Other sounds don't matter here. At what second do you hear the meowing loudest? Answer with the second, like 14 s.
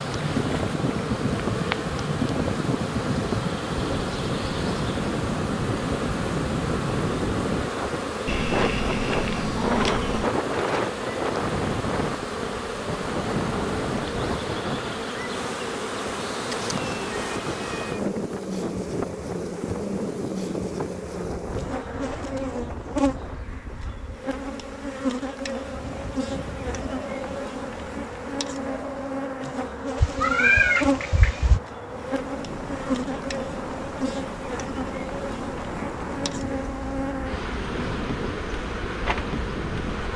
31 s.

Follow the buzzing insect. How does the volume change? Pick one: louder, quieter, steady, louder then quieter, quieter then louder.
steady.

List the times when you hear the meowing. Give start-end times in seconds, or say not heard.
8.2-10.3, 16.5-18.0, 29.9-31.6.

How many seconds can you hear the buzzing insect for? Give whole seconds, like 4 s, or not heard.
40 s.